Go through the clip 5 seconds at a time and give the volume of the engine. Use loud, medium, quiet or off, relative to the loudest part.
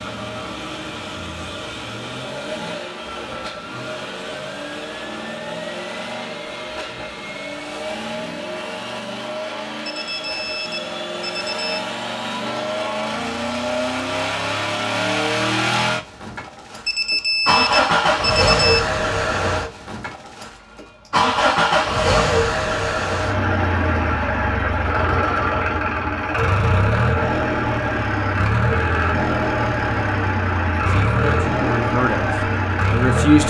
medium, medium, medium, loud, loud, loud, loud.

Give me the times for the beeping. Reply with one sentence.
You can hear the beeping from 9.8 to 11.8 s and from 16.9 to 18.8 s.